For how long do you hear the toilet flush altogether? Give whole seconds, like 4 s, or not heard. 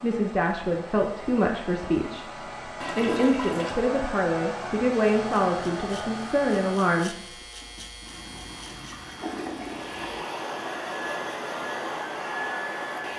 3 s.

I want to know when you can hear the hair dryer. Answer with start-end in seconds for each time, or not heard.
0.0-7.0, 9.6-13.1.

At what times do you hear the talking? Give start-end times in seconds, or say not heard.
0.0-7.2.